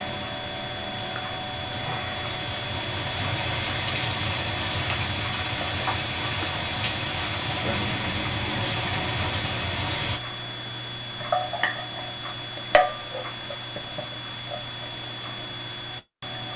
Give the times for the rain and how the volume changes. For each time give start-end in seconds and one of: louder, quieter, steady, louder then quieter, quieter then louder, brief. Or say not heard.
0.0-10.2 louder.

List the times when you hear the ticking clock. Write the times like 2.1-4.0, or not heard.
0.0-16.5.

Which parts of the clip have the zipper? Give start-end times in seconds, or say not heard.
not heard.